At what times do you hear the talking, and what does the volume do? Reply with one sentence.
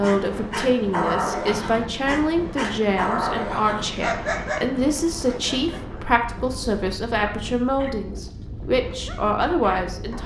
You can hear the talking from 0.0 to 10.2 s, at a steady volume.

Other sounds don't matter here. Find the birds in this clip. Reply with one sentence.
The birds can't be heard in this clip.